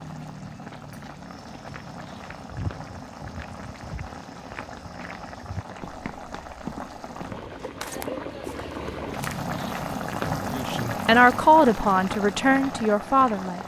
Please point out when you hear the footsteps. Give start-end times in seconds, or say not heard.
1.4-9.4.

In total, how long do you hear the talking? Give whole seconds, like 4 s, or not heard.
3 s.